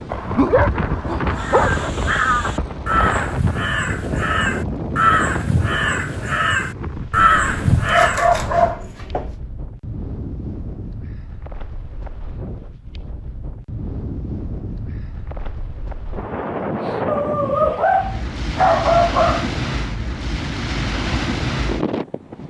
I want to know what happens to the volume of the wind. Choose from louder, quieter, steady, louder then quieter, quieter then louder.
quieter then louder.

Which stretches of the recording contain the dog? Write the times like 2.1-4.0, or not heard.
0.1-1.9, 7.8-9.3, 17.1-19.5.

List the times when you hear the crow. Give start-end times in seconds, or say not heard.
1.4-8.3.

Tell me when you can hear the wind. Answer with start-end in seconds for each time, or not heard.
0.0-22.4.